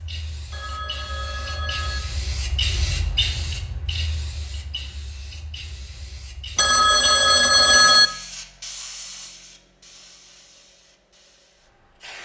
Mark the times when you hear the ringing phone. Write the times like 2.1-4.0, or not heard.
0.5-2.0, 6.5-8.1.